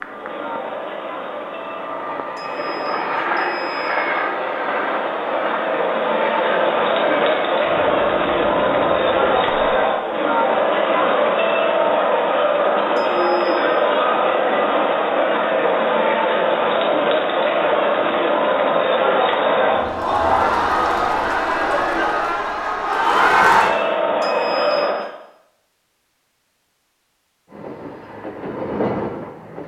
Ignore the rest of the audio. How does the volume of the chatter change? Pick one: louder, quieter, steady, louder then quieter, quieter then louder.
louder.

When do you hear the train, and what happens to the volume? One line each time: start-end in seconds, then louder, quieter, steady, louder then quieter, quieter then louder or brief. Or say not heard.
0.0-9.8 louder then quieter
27.4-29.6 brief.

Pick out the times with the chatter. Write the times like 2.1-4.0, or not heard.
0.0-25.1.